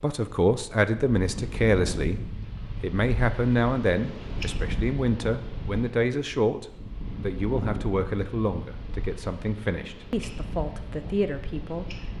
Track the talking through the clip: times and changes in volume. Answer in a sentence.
You can hear the talking from 0.0 to 12.1 s, getting quieter.